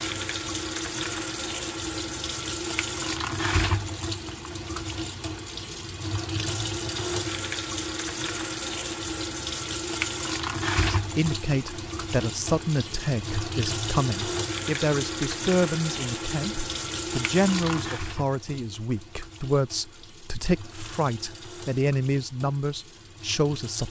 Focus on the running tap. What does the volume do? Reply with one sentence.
The volume of the running tap goes down.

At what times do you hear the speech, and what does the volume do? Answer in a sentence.
You can hear the speech from 10.9 to 23.8 s, at a steady volume.